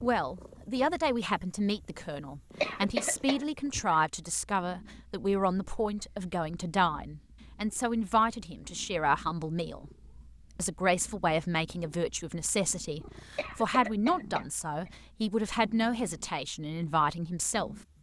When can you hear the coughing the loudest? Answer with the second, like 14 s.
3 s.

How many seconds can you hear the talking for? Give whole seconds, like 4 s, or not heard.
17 s.